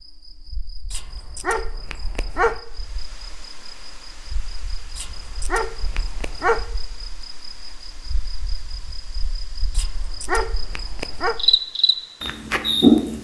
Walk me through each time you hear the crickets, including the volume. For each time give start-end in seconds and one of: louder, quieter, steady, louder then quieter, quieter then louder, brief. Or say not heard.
0.0-13.1 louder.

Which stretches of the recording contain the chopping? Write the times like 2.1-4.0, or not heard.
not heard.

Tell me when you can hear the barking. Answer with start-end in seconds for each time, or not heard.
0.9-2.6, 5.0-6.7, 9.8-11.3.